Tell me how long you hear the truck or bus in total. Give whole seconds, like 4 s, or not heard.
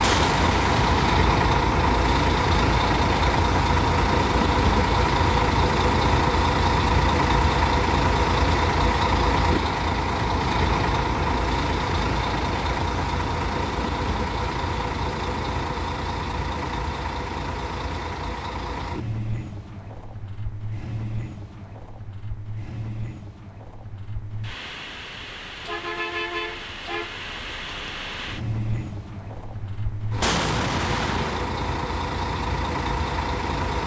34 s.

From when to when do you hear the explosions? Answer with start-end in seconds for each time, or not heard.
0.0-1.1, 30.2-31.4.